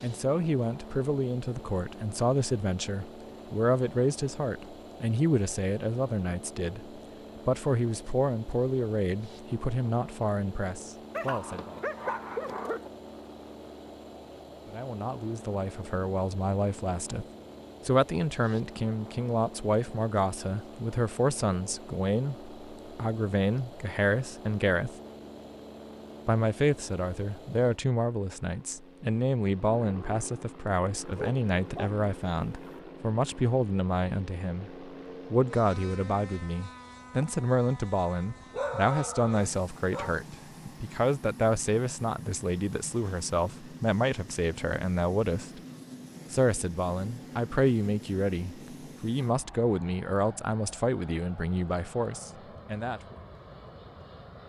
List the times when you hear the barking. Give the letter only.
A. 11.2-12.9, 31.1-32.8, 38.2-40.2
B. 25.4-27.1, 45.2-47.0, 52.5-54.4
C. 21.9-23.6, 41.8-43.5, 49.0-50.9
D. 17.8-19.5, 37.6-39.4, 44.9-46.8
A.